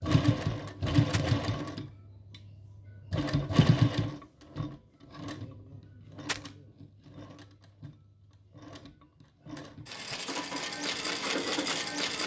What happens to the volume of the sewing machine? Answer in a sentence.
The loudness of the sewing machine goes down, then up.